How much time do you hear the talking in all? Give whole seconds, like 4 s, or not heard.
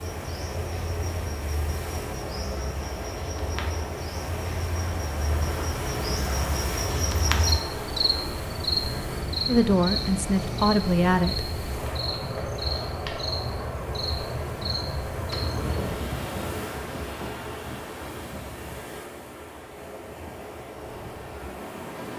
2 s.